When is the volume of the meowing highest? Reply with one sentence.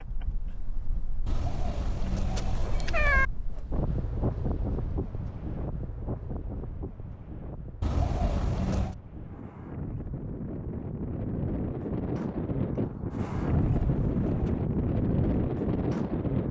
The loudest moment of the meowing is at 3 seconds.